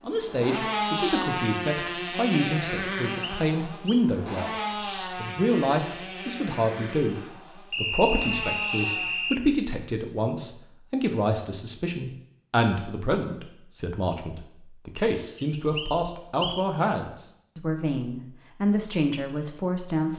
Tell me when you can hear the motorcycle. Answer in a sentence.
The motorcycle can be heard from 0.1 to 9.4 s.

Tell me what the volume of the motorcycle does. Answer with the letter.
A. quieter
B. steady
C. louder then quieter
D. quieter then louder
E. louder
A.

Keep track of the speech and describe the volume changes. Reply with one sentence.
The volume of the speech stays about the same.